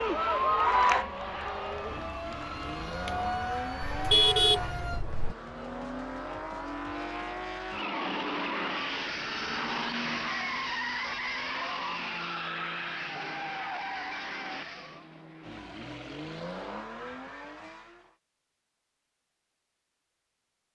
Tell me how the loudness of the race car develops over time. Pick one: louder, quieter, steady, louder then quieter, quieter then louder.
louder then quieter.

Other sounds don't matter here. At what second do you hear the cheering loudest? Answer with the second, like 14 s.
1 s.